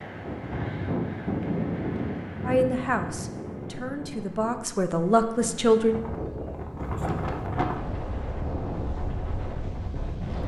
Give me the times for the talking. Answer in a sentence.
You can hear the talking from 2.5 to 6.0 s.